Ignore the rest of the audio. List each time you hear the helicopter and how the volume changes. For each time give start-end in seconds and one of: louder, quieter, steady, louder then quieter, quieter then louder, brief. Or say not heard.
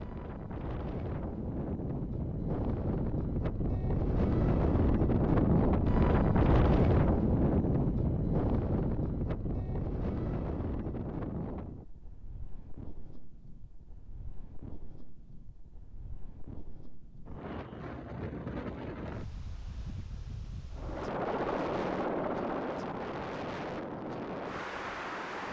20.7-25.4 quieter.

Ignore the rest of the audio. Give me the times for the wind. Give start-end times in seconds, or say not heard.
0.0-25.4.